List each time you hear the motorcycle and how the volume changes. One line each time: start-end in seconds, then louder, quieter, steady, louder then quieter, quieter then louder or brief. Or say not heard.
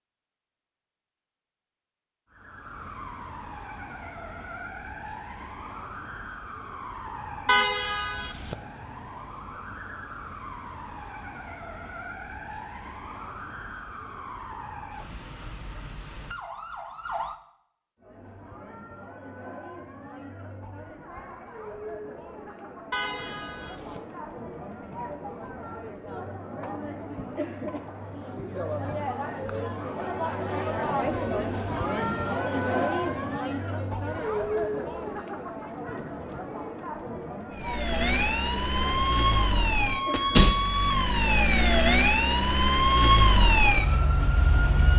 not heard.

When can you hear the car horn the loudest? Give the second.
8 s.